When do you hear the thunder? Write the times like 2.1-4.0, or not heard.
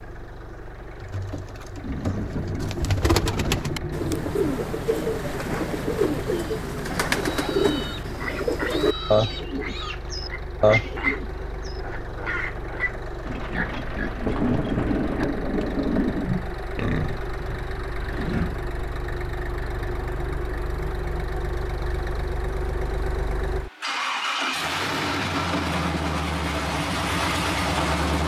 1.8-4.4, 14.2-16.2.